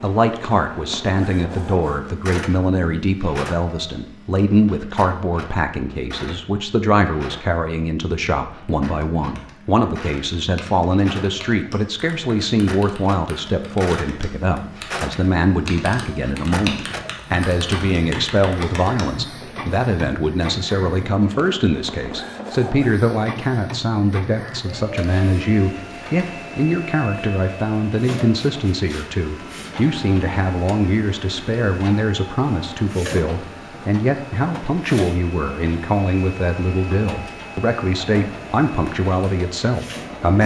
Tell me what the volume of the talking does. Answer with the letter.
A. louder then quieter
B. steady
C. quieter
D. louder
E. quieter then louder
B.